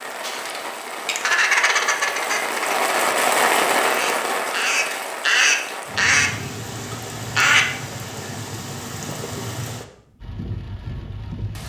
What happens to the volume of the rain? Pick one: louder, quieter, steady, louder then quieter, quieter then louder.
louder then quieter.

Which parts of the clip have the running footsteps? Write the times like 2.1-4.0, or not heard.
not heard.